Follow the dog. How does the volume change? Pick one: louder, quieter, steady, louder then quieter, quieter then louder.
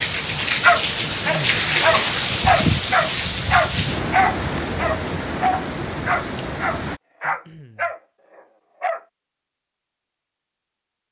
quieter.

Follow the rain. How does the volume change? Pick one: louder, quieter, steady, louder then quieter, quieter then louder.
quieter.